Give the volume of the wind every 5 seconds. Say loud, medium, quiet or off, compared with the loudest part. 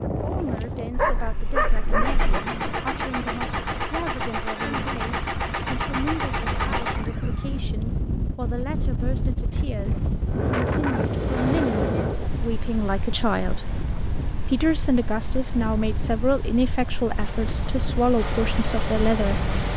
medium, loud, loud, medium.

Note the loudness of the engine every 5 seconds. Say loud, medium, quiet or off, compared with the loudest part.
loud, loud, quiet, loud.